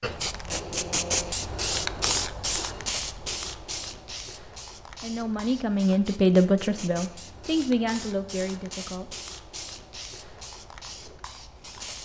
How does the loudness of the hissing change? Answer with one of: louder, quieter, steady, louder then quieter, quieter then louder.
quieter.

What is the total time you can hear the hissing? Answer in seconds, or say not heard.
12 s.